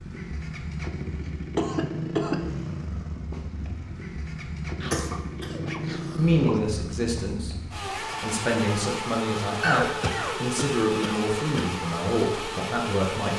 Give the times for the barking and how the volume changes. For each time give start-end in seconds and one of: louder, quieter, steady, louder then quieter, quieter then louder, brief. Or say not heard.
not heard.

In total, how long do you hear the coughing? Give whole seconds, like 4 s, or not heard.
5 s.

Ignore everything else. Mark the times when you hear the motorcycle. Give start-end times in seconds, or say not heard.
0.0-13.3.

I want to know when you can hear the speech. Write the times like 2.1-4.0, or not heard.
6.2-13.3.